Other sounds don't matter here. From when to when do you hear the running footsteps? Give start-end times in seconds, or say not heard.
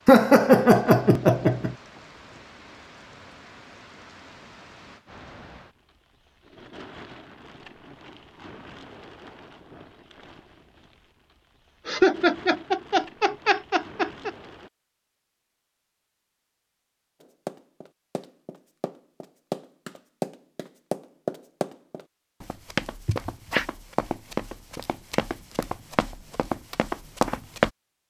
17.2-27.7.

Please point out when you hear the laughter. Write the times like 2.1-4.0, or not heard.
0.1-1.8, 11.8-14.3, 23.1-23.6.